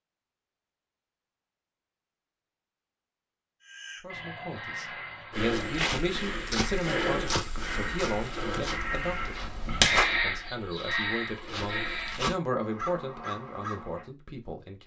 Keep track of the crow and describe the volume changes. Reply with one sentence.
The loudness of the crow goes up, then down.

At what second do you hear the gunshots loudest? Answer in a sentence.
The loudest moment of the gunshots is at 10 seconds.